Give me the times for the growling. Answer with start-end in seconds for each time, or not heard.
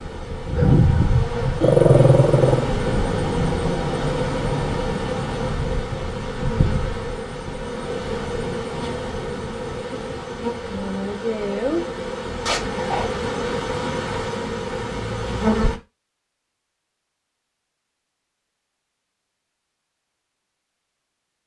1.6-2.6, 12.4-13.1.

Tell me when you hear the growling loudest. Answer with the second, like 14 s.
2 s.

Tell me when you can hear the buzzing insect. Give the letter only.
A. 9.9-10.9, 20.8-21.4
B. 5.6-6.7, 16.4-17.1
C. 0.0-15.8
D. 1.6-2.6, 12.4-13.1
C.